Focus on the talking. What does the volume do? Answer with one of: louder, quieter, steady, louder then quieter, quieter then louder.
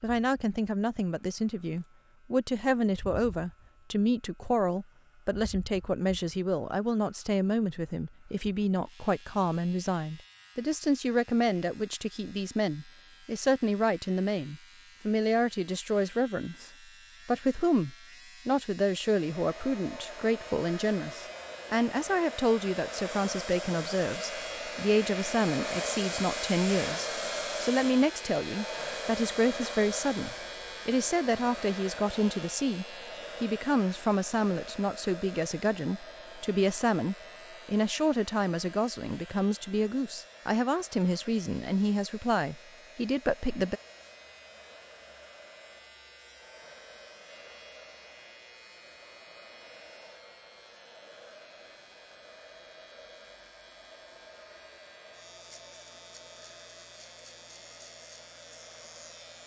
steady.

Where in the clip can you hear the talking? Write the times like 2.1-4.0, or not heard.
0.0-43.8.